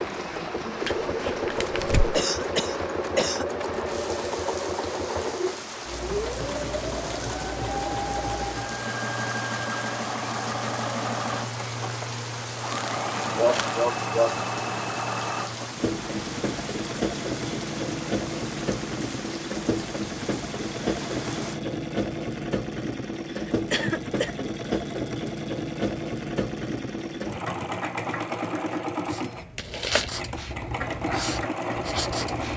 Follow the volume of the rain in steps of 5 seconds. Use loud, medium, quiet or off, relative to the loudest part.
loud, loud, loud, loud, loud, off, off.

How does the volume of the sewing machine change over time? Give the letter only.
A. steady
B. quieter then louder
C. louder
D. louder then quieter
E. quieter
A.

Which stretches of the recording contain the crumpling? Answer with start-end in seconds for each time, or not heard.
0.8-2.2, 12.7-13.8, 29.6-30.2.